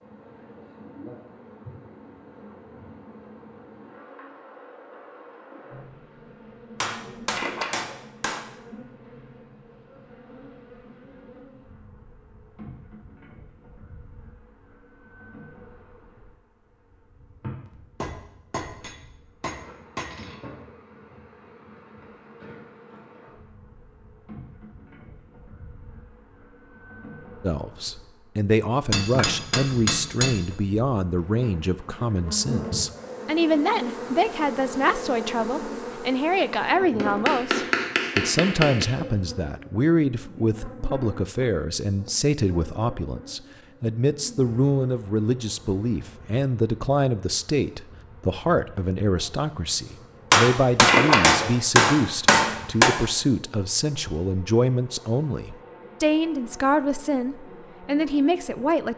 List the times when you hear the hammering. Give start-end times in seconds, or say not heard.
6.8-8.4, 17.6-20.4, 28.9-30.4, 37.0-38.9, 50.3-52.9.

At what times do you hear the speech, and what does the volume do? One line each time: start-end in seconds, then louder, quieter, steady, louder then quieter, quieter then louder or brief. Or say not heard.
27.4-58.9 steady.